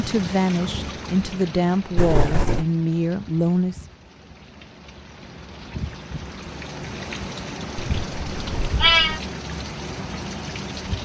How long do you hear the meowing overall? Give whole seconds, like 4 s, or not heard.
2 s.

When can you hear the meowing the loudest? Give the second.
9 s.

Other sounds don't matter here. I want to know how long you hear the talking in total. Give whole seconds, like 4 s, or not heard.
4 s.